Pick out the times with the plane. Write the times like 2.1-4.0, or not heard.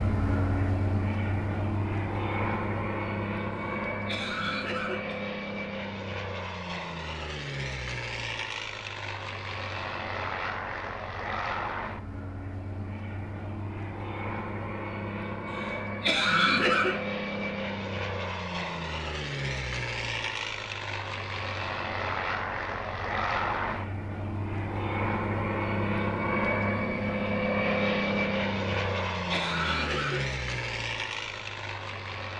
0.0-32.3.